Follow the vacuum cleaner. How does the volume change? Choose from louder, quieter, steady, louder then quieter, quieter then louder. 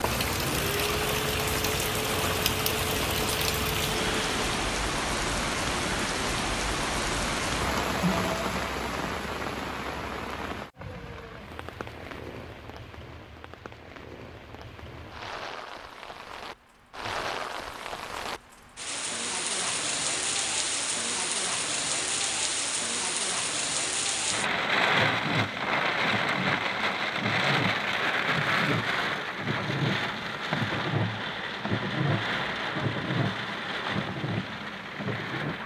steady.